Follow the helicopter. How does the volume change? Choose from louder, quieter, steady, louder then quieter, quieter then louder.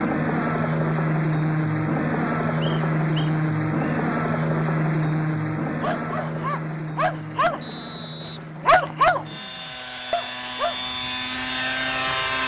quieter then louder.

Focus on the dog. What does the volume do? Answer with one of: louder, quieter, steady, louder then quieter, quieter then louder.
louder then quieter.